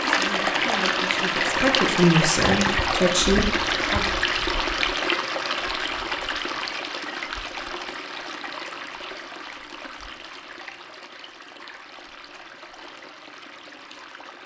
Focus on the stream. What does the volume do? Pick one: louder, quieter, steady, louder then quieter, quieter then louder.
quieter.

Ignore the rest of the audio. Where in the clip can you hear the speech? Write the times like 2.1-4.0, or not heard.
0.1-4.0.